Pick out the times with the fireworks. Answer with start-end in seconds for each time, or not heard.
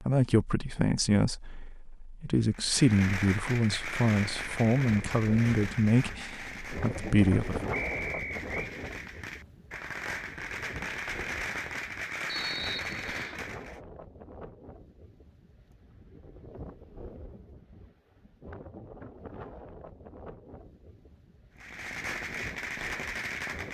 2.3-13.8, 21.6-23.6.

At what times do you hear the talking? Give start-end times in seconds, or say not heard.
0.0-7.6.